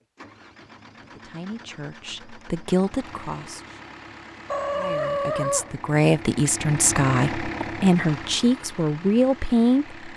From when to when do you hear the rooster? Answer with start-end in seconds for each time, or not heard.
4.5-5.8.